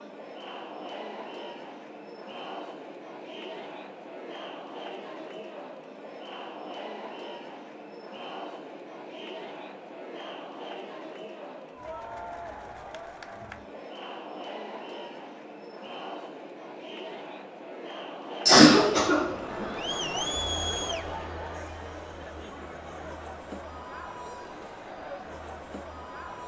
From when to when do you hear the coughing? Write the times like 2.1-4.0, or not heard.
18.4-19.6.